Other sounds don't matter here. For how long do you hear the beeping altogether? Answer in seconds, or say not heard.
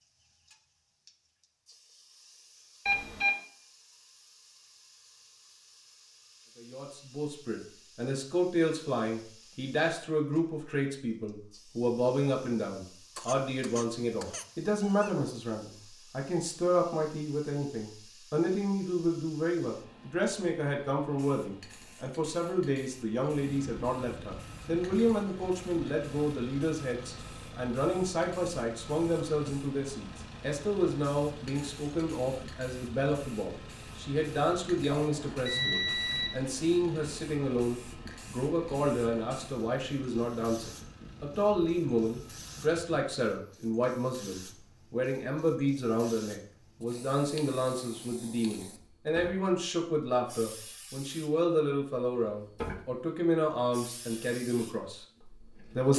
2 s.